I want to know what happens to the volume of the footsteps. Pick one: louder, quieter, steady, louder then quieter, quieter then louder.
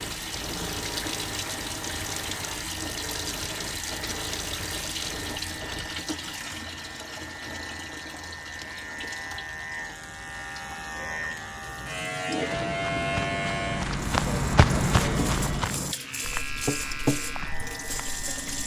louder then quieter.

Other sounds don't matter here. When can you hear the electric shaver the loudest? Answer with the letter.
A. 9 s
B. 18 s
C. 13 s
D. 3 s
C.